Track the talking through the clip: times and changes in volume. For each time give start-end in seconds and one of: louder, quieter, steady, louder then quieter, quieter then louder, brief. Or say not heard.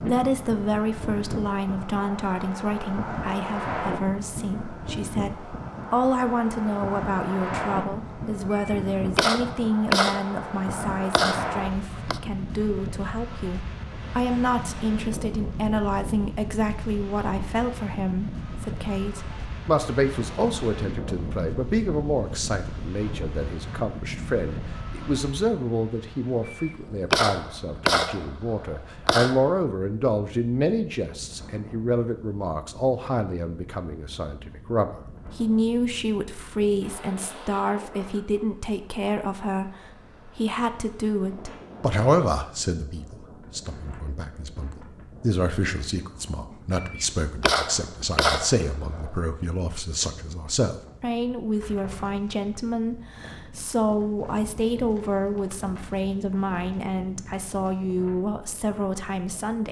0.0-59.6 steady.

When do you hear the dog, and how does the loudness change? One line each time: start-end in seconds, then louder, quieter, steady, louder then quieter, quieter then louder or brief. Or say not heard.
not heard.